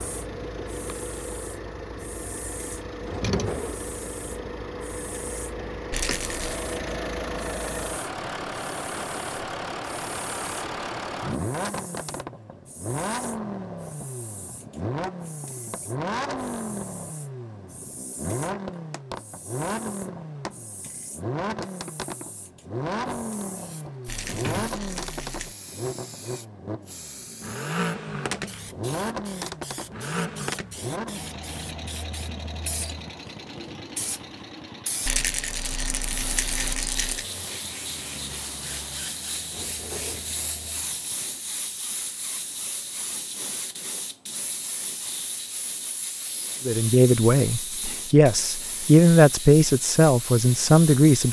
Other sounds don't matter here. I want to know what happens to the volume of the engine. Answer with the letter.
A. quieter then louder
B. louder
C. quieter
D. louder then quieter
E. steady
C.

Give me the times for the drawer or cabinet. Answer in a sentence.
The drawer or cabinet can be heard from 3.0 to 3.9 s, from 24.2 to 24.8 s and from 39.5 to 40.4 s.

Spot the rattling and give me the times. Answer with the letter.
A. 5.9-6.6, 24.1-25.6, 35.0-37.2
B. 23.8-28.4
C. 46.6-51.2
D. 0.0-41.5
A.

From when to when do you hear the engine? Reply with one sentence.
You can hear the engine from 0.0 to 41.5 s.